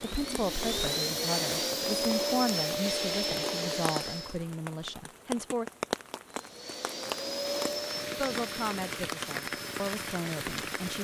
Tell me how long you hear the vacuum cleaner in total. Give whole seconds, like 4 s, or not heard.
9 s.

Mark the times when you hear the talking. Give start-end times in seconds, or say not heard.
0.0-5.7, 8.2-10.9.